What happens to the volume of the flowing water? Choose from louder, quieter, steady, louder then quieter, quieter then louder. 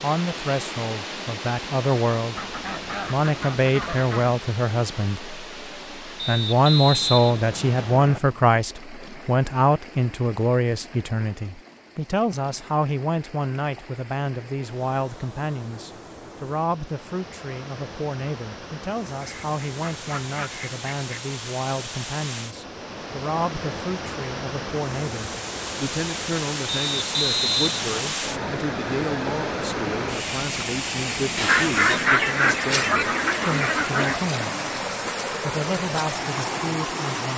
quieter then louder.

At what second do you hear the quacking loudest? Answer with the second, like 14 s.
32 s.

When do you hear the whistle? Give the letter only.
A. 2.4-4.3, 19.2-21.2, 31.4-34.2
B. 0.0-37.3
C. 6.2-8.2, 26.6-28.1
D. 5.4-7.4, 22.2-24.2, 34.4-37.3
C.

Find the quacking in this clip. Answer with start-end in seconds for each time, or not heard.
2.4-4.3, 19.2-21.2, 31.4-34.2.